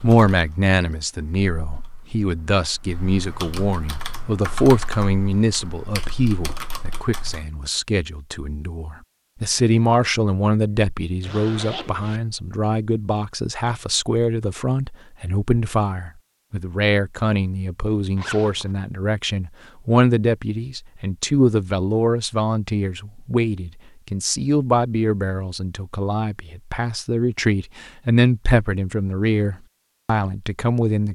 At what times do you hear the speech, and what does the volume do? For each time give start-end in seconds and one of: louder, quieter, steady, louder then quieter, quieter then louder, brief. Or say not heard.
0.0-31.1 steady.